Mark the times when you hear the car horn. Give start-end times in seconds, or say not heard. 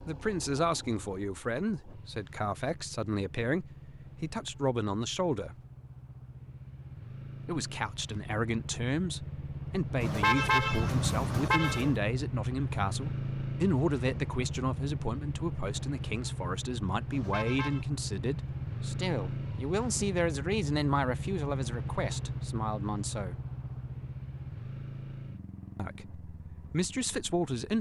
10.0-11.9, 17.1-17.9.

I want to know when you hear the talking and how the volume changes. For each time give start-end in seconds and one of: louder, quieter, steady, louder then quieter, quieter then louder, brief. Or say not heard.
0.1-5.6 steady
7.5-23.4 steady
25.8-27.7 brief.